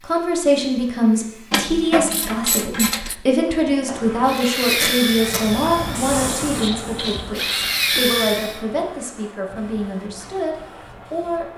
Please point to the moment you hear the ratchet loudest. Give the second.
2 s.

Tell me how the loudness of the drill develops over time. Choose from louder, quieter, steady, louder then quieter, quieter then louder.
quieter then louder.